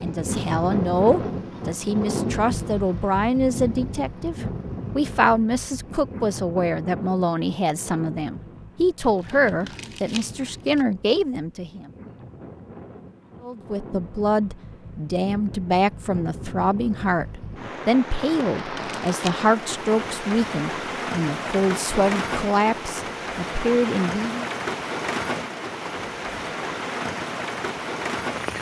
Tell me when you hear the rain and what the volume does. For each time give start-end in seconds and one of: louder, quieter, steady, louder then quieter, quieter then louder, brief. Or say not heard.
0.0-28.5 quieter then louder.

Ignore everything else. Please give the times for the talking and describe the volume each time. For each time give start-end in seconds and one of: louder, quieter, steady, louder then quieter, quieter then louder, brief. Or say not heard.
0.0-11.9 steady
13.4-24.5 steady.